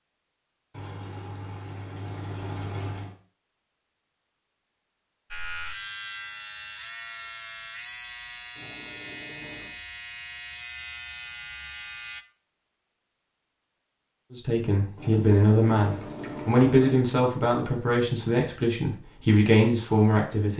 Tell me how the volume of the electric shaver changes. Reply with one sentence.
The volume of the electric shaver stays about the same.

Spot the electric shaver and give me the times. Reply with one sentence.
You can hear the electric shaver from 5.3 to 12.2 s.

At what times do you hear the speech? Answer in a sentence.
The speech can be heard from 14.3 to 20.5 s.